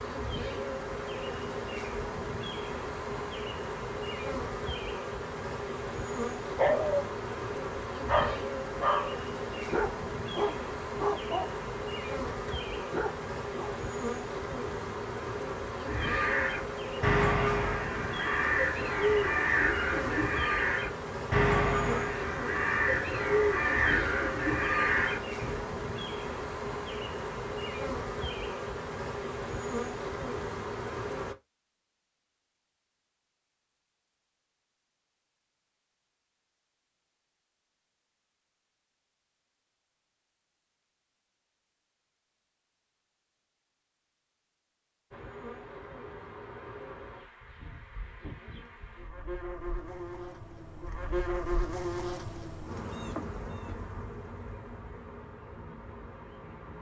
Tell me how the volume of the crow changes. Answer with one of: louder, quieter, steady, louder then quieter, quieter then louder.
steady.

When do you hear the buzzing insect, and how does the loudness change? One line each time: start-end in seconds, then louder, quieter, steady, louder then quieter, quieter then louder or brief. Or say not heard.
0.0-31.4 steady
45.1-56.7 louder then quieter.